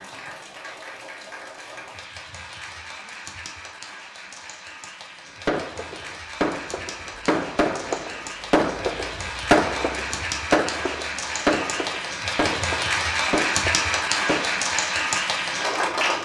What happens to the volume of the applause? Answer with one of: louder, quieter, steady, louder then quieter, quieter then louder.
louder.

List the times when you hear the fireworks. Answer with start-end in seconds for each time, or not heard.
5.5-14.6.